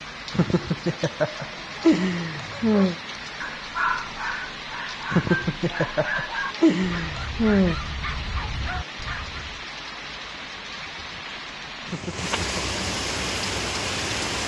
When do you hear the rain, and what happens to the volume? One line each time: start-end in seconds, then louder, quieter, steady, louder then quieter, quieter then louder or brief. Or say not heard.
0.0-14.4 louder.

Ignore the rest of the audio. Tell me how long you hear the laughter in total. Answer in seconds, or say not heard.
6 s.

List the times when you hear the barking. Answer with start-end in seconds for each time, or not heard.
2.5-9.6.